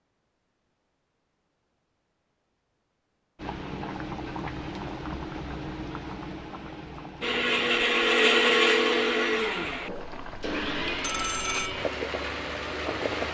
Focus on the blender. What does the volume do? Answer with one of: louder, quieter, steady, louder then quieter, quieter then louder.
quieter.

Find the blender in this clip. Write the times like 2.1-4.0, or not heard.
7.2-13.2.